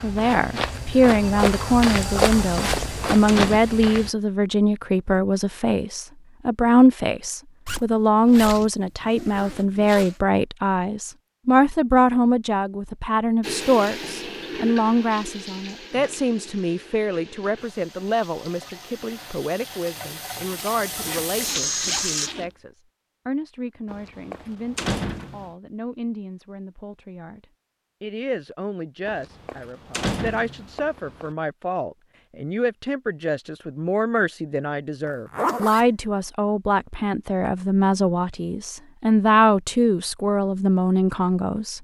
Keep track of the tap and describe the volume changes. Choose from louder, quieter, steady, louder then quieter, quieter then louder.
quieter then louder.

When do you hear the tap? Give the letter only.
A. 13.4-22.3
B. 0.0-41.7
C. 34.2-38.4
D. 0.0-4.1
A.